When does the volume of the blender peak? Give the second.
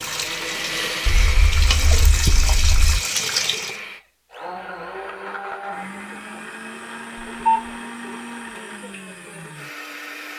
1 s.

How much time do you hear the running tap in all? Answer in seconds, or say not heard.
4 s.